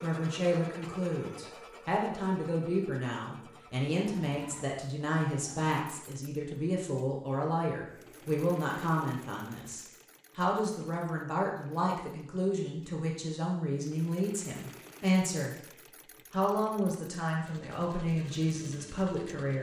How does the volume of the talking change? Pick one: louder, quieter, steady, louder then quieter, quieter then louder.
steady.